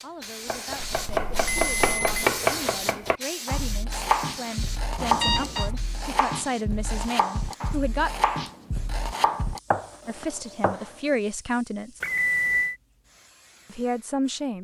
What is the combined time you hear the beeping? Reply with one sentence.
You can hear the beeping for 3 seconds altogether.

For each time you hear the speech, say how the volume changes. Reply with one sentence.
You can hear the speech from 0.0 to 8.1 s, getting louder; briefly from 10.1 to 12.0 s; and briefly from 13.7 to 14.5 s.